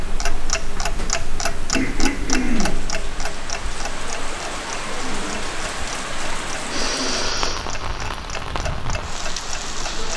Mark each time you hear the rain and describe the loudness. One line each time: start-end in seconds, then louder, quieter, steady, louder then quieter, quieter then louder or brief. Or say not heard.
0.0-10.1 louder.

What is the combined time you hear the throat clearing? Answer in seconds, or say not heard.
3 s.